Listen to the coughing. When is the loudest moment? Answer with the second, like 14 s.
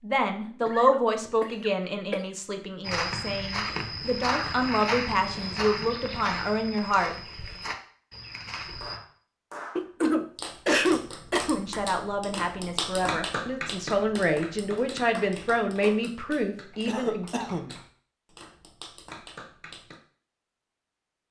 11 s.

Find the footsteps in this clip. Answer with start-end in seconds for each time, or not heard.
2.8-9.0.